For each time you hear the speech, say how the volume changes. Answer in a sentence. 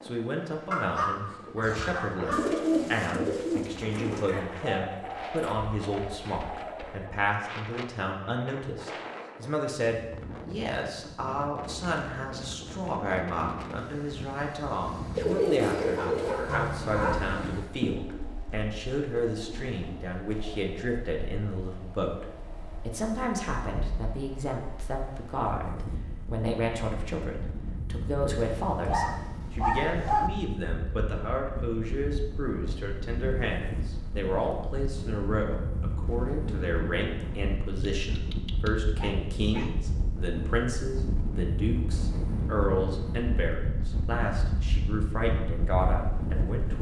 The speech can be heard from 0.0 to 46.7 s, at a steady volume.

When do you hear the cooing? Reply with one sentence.
You can hear the cooing from 1.6 to 7.1 s and from 15.2 to 20.6 s.